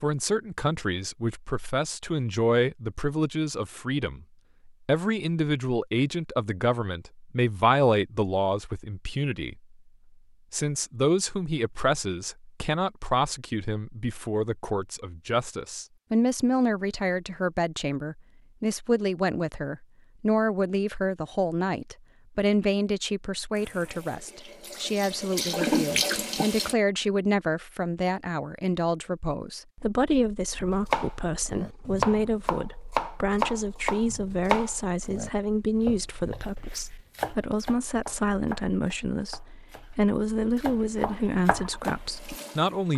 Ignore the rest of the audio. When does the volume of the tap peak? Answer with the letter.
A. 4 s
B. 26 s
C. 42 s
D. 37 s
B.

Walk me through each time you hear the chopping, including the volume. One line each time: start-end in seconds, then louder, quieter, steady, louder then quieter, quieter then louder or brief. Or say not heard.
30.6-40.0 quieter
40.6-42.0 brief.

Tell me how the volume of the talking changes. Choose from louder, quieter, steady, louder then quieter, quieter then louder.
steady.